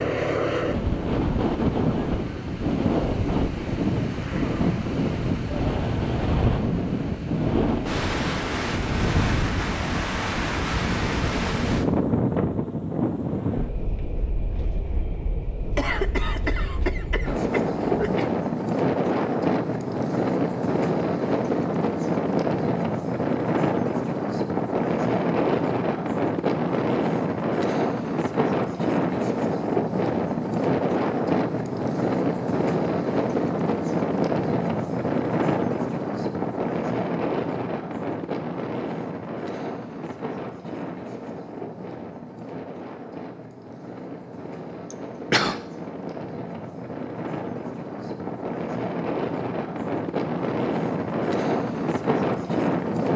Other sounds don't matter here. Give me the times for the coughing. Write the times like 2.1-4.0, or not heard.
15.7-18.3, 44.9-45.6.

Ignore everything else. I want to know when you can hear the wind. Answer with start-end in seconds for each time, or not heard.
0.0-53.1.